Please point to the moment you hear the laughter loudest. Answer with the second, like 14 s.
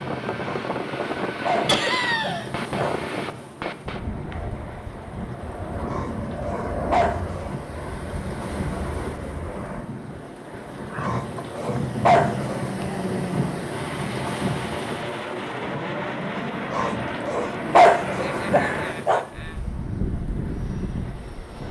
2 s.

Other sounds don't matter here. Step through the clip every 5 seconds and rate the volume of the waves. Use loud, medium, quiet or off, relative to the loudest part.
medium, medium, loud, medium, medium.